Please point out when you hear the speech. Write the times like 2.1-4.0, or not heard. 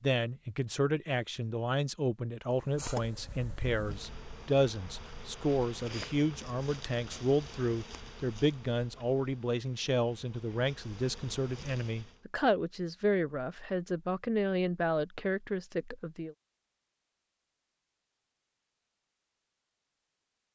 0.0-16.4.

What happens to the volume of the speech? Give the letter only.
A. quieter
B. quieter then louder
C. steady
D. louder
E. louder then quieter
C.